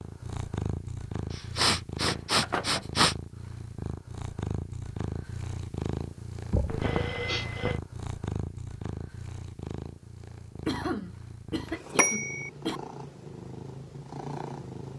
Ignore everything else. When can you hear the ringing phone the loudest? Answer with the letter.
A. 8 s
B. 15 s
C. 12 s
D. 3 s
C.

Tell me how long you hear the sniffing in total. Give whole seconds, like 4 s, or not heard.
5 s.